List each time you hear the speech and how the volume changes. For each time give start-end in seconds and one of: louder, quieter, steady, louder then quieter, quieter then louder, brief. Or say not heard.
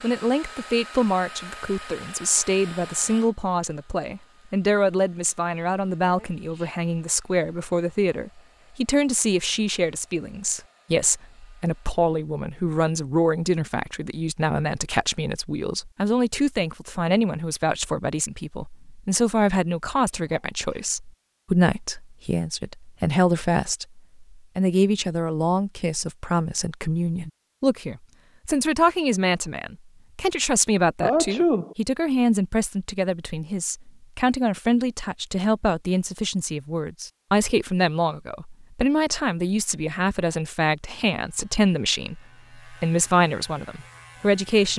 0.0-44.7 steady.